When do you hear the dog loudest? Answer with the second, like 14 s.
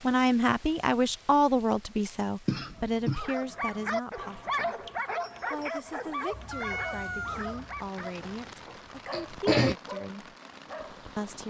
5 s.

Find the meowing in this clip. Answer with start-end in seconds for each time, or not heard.
6.3-7.9.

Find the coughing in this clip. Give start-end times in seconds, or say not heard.
2.5-3.2, 8.0-9.8.